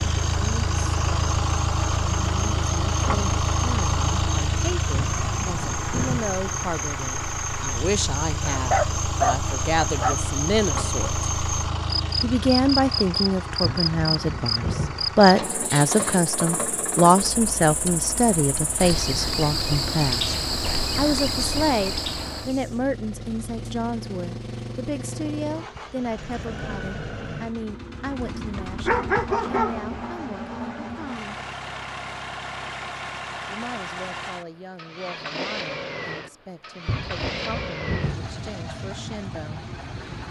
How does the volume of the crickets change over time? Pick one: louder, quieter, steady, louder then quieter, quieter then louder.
louder.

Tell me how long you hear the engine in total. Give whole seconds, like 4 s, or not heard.
40 s.